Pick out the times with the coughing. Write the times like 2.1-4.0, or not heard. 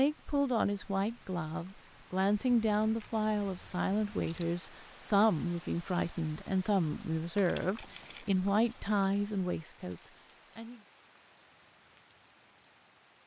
not heard.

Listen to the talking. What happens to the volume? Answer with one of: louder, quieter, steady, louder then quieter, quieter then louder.
steady.